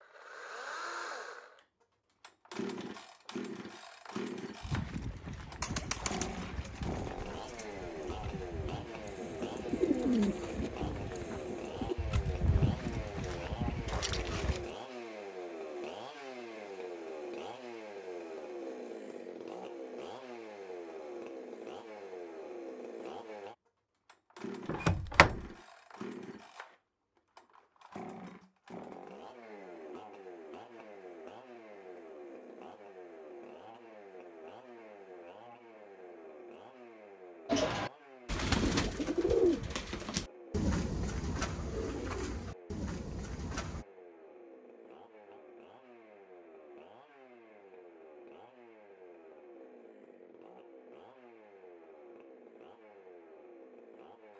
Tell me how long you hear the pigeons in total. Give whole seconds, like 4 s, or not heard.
13 s.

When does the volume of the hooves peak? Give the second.
13 s.